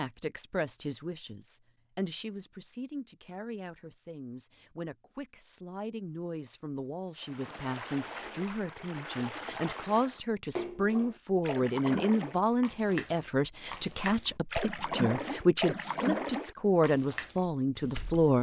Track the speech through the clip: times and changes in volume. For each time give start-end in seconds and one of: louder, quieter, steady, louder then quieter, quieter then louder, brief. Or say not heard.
0.0-18.3 louder.